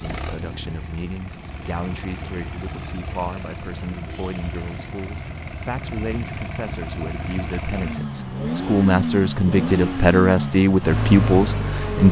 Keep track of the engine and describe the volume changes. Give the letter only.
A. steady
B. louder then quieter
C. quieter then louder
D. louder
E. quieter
D.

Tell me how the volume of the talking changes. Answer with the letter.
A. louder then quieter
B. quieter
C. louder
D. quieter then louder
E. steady
C.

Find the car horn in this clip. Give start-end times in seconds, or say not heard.
not heard.